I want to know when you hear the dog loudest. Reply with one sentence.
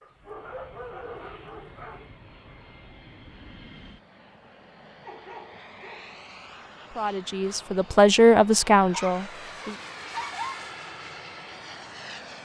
The volume of the dog peaks at 10 seconds.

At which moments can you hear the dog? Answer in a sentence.
You can hear the dog from 0.0 to 2.1 s, from 5.0 to 6.2 s and from 8.9 to 10.7 s.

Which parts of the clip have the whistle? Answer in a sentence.
The whistle can't be heard in this clip.